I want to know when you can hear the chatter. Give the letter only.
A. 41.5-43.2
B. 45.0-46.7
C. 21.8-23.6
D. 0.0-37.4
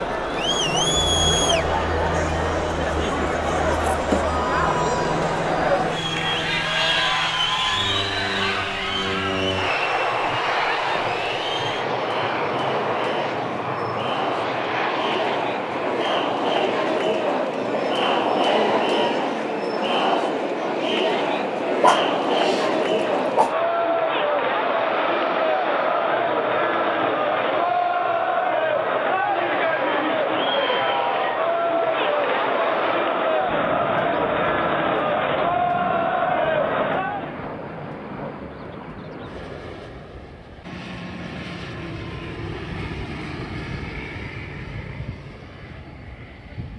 D.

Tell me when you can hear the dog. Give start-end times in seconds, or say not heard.
21.8-23.6.